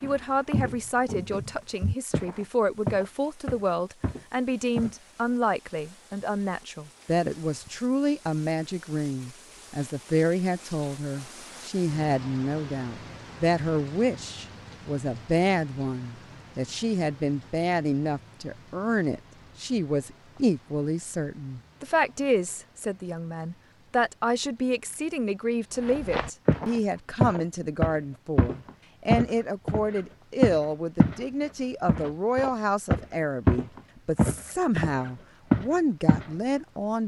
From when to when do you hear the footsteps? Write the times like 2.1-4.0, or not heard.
0.0-5.0, 25.8-31.2, 31.9-36.3.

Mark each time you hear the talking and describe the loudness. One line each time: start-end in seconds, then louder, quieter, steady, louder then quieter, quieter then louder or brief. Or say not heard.
0.0-37.0 steady.